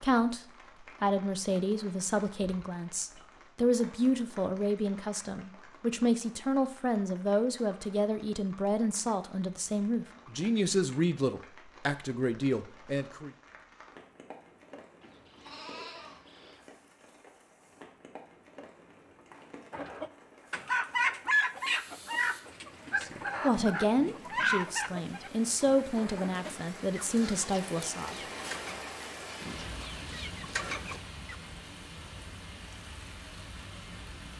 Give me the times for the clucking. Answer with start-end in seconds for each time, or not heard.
19.7-31.4.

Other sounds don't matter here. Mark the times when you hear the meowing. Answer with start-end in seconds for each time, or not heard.
not heard.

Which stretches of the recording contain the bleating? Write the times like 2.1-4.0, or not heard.
15.0-16.6.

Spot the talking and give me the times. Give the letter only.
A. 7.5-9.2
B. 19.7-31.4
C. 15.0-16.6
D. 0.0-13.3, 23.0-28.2
D.